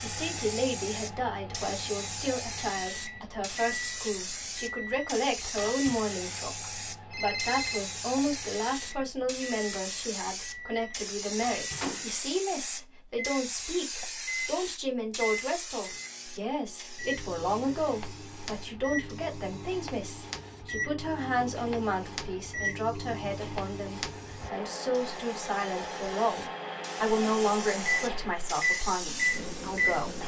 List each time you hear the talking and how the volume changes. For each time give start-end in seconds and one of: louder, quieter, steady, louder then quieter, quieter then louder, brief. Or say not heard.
0.0-30.2 steady.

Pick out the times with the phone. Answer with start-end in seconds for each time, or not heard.
7.1-7.8.